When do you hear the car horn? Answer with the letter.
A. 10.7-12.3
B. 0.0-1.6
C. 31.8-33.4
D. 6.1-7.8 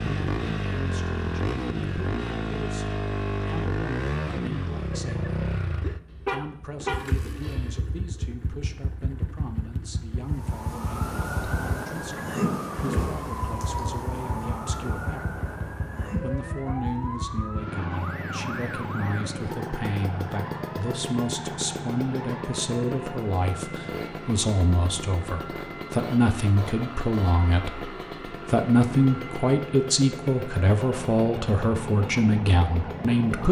D.